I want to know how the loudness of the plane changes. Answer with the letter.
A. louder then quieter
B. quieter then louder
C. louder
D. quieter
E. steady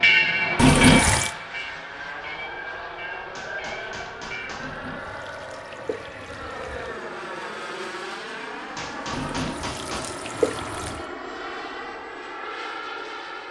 E.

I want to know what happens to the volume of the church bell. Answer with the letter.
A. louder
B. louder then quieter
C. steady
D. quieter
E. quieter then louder
D.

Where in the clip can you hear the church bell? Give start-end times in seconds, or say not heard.
0.0-4.5.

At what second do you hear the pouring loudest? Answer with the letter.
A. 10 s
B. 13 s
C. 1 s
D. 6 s
C.